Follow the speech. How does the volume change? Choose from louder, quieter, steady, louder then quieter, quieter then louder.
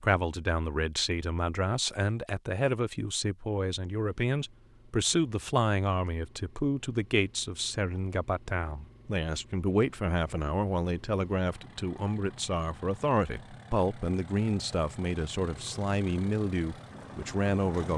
steady.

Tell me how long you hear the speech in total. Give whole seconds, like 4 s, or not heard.
18 s.